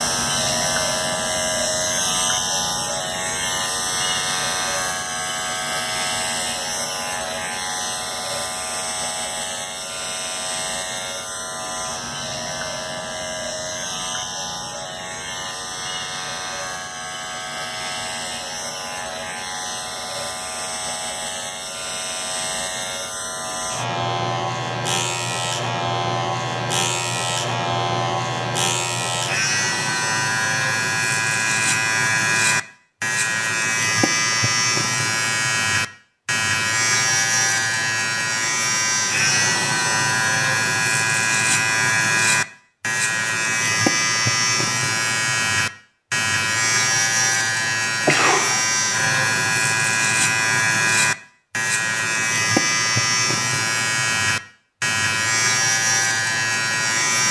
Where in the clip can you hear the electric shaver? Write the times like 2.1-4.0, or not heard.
0.0-57.2.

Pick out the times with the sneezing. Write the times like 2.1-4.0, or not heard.
48.0-48.6.